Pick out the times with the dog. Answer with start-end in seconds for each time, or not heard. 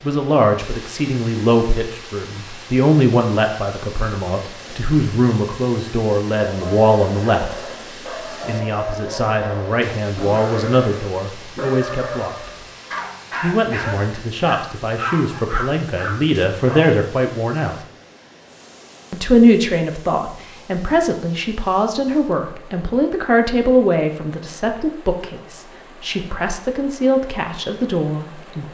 6.3-16.9.